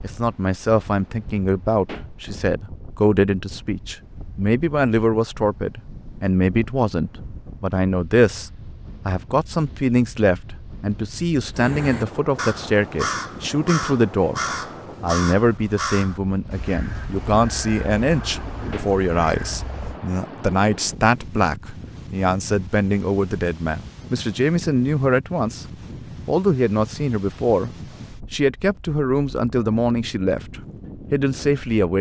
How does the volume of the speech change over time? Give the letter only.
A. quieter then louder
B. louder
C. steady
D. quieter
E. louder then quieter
C.